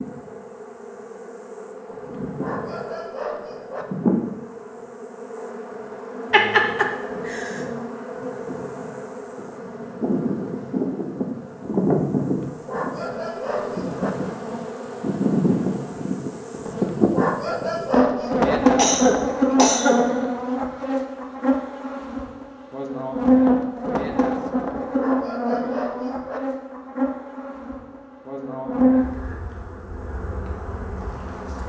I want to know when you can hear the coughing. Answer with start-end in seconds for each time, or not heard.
6.3-7.5, 18.8-20.0.